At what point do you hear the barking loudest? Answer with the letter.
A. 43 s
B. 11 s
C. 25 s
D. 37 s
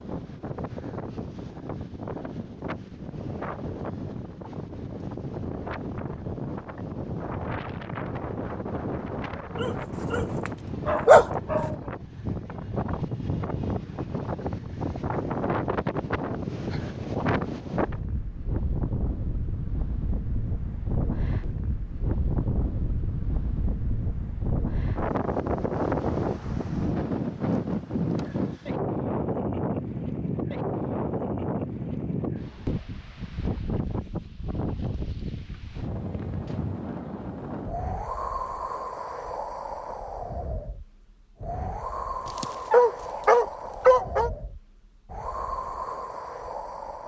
B.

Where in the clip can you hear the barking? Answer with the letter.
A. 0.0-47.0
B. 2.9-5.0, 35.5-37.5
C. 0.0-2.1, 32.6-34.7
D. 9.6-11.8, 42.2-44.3
D.